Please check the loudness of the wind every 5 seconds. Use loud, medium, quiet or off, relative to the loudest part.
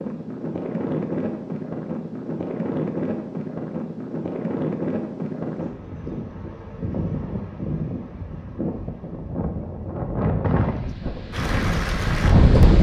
medium, medium, loud.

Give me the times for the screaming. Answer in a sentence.
The screaming can't be heard in this clip.